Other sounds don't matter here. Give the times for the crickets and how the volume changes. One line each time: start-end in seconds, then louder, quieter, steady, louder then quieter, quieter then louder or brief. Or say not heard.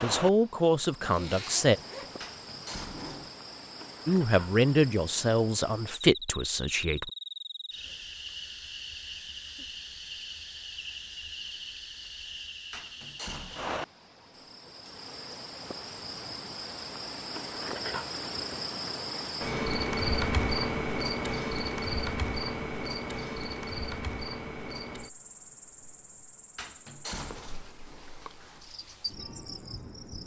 0.0-30.2 louder then quieter.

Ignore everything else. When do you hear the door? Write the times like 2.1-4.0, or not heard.
2.2-3.1, 12.7-13.8, 26.6-27.6.